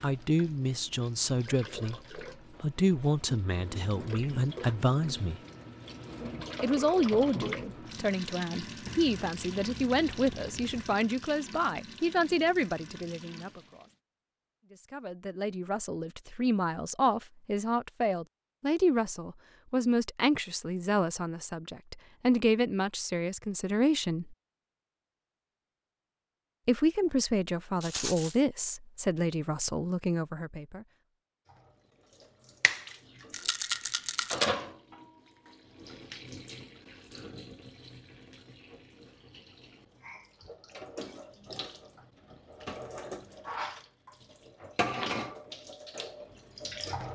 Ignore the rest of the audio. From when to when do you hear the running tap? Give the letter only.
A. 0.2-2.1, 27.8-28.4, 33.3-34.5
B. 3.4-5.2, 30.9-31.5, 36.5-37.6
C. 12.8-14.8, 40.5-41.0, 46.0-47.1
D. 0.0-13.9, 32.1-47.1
D.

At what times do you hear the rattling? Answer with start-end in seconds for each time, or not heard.
0.2-2.1, 27.8-28.4, 33.3-34.5.